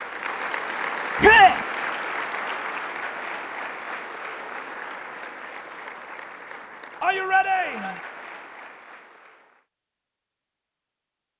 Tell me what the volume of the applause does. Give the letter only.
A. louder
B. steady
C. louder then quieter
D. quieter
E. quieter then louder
D.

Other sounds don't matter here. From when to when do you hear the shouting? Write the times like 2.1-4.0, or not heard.
1.2-1.6, 7.0-8.0.